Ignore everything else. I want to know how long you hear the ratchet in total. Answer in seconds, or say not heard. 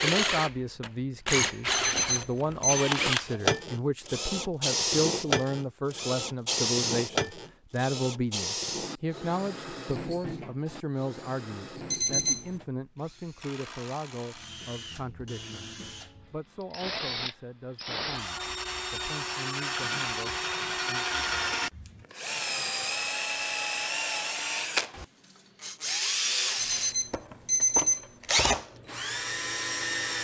not heard.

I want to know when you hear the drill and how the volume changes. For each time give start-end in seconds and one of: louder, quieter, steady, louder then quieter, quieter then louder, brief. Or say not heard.
0.0-30.2 quieter then louder.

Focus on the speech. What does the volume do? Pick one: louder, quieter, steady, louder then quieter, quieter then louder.
quieter.